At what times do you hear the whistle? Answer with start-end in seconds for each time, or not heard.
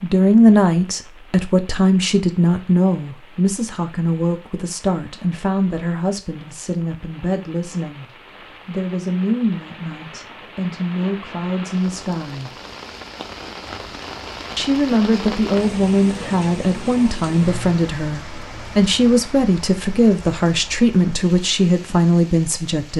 not heard.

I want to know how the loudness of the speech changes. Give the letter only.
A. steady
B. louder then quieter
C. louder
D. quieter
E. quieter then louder
E.